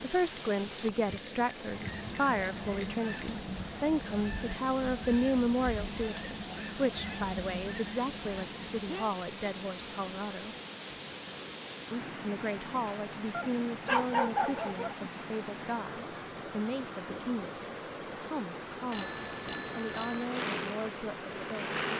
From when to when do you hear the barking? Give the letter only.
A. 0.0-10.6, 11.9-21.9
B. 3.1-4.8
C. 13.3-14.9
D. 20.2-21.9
C.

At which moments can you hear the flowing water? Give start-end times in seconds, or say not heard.
0.0-21.9.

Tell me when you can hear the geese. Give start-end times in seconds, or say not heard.
1.6-9.2.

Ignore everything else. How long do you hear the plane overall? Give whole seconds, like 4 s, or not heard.
2 s.